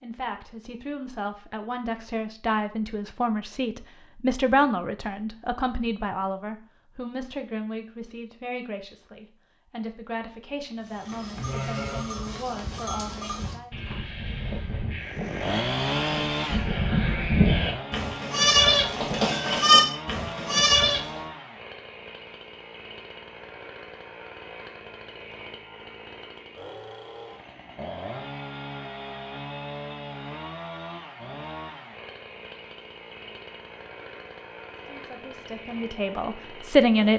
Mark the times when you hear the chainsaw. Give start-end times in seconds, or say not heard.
15.0-37.1.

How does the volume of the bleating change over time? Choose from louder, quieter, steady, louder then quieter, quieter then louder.
louder.